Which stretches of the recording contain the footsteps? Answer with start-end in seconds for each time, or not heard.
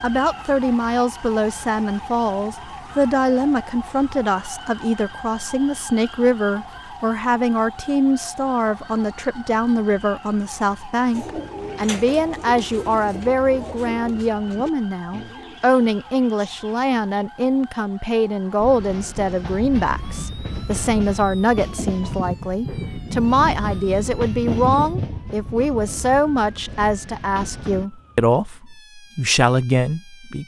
not heard.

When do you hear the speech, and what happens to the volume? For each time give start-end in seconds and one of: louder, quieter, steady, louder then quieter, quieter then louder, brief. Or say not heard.
0.0-30.4 steady.